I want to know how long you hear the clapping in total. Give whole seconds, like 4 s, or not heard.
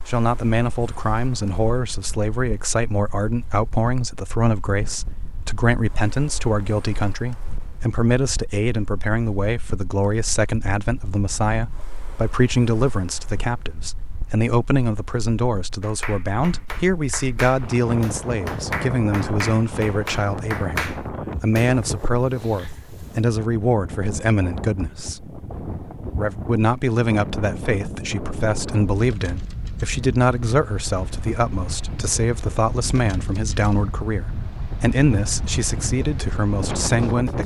6 s.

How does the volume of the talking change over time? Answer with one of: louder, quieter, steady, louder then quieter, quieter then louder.
steady.